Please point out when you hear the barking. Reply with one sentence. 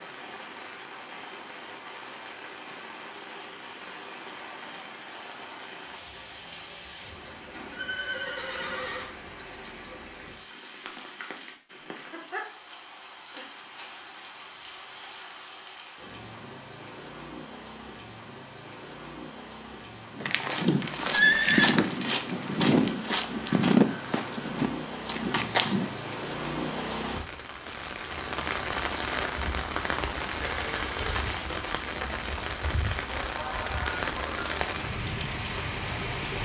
The barking can't be heard in this clip.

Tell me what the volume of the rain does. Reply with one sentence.
The loudness of the rain goes up.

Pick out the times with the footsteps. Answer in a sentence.
The footsteps can be heard from 20.1 to 25.9 s.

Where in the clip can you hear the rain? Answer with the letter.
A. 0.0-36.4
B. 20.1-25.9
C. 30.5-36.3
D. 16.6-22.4
A.